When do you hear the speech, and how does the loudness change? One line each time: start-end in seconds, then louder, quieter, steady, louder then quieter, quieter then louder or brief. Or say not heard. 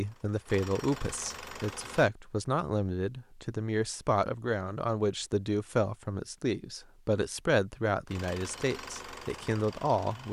0.0-10.2 steady.